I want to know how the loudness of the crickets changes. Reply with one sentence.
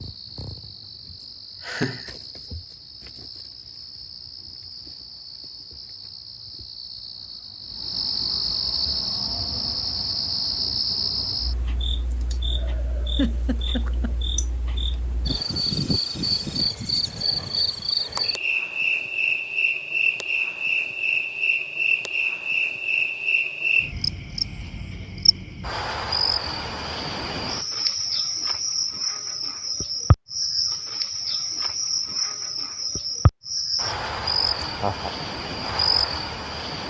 The loudness of the crickets goes up.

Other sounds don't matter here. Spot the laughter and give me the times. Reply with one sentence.
You can hear the laughter from 1.6 to 2.1 s, from 13.2 to 14.2 s and from 34.6 to 35.2 s.